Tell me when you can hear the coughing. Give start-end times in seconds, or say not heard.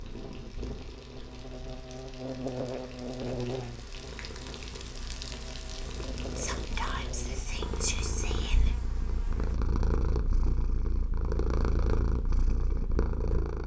not heard.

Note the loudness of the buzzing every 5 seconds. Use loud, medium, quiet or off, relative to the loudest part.
loud, medium, off.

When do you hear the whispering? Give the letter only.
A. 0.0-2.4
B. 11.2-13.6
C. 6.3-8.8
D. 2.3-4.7
C.